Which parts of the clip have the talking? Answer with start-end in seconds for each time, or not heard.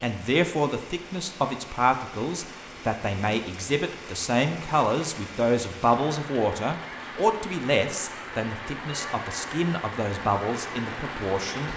0.0-11.7.